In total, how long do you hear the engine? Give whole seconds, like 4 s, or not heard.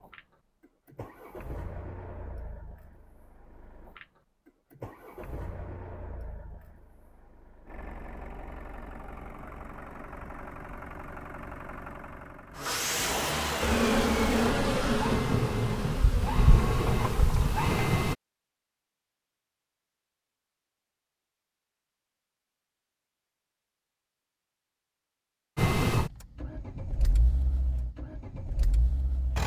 22 s.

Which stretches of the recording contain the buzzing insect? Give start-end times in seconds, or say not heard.
13.6-17.7.